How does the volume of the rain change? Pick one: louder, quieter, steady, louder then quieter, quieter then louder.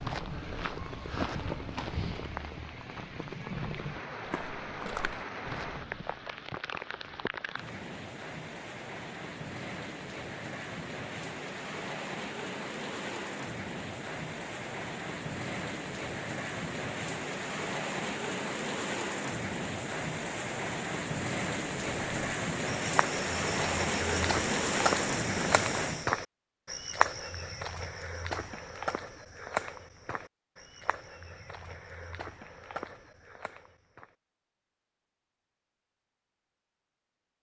louder.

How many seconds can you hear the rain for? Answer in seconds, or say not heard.
26 s.